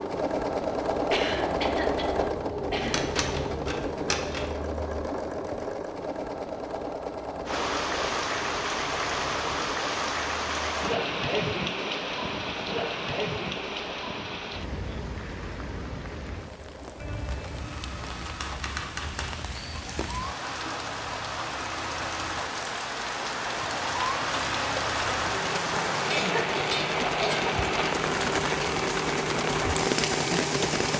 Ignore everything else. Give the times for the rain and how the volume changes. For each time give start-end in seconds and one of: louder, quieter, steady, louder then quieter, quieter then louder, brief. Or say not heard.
7.5-30.9 quieter then louder.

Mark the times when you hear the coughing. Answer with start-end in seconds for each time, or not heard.
1.1-3.2, 26.1-27.6.